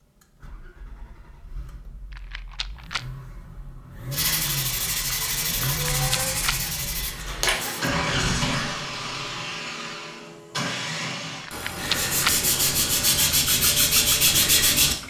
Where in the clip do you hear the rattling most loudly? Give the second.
12 s.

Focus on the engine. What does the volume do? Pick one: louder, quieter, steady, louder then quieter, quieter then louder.
louder then quieter.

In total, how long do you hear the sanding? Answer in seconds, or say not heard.
7 s.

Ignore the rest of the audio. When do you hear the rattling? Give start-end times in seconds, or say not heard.
2.1-3.0, 5.9-6.6, 11.4-12.3.